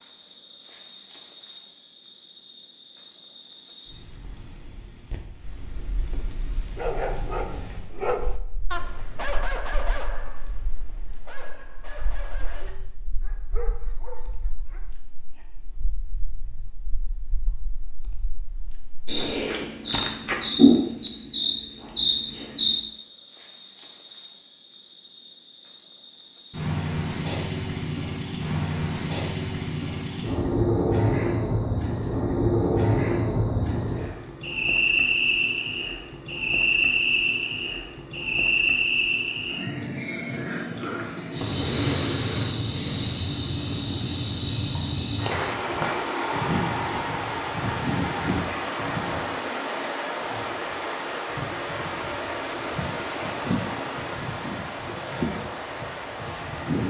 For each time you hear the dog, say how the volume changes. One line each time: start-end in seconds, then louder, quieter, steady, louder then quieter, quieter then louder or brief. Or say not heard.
6.7-14.8 quieter.